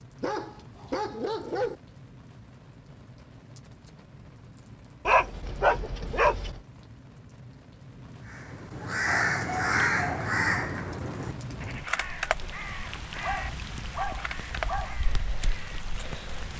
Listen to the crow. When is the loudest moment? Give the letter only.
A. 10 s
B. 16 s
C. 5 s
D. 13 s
A.